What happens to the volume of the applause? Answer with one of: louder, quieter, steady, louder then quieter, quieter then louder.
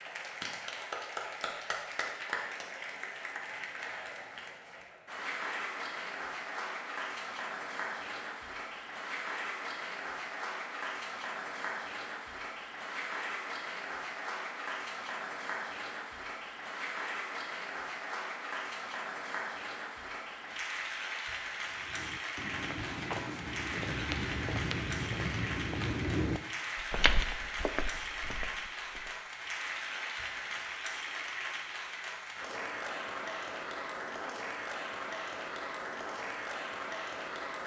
steady.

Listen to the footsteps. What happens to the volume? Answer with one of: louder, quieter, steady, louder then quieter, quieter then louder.
louder then quieter.